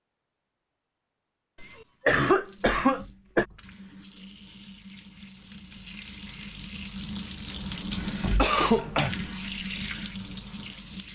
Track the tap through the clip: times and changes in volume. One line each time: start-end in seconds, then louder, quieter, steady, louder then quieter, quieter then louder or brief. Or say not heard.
2.2-11.1 louder.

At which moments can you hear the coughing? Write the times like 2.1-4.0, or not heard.
1.6-3.5, 7.5-9.2.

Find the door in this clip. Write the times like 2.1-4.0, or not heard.
not heard.